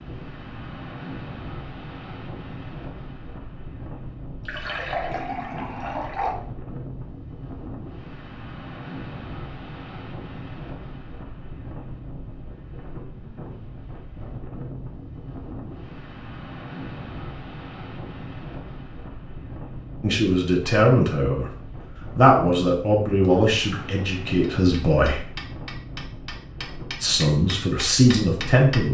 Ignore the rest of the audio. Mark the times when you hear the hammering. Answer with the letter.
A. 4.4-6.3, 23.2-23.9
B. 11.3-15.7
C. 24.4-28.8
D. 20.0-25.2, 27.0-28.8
C.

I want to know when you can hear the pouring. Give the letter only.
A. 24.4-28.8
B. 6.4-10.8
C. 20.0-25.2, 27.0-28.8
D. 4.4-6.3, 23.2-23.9
D.